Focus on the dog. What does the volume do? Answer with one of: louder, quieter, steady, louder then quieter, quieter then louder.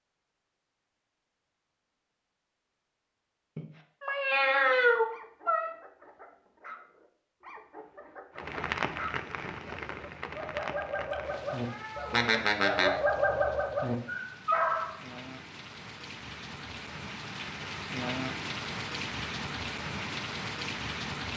louder.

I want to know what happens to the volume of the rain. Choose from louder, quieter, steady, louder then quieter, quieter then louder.
quieter then louder.